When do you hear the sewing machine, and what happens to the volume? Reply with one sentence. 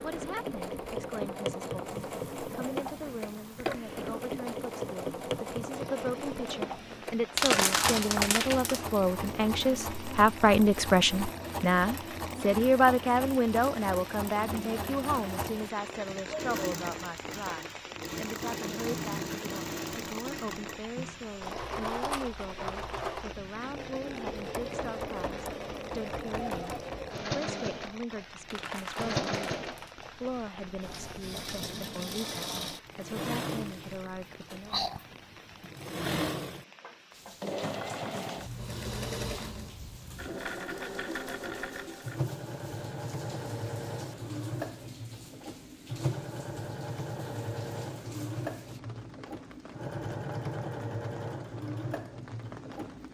You can hear the sewing machine from 0.0 to 53.0 s, at a steady volume.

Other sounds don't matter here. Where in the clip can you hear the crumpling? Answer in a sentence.
The crumpling can be heard from 7.3 to 8.8 s and from 28.5 to 30.1 s.